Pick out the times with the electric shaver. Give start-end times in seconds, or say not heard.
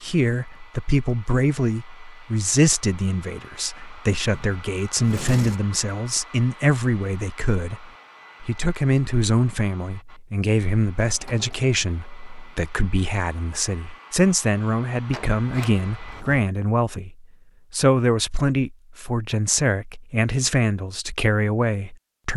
not heard.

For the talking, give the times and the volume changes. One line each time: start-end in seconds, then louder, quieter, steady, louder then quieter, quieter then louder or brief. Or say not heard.
0.0-22.3 steady.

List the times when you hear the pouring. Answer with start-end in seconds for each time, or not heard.
not heard.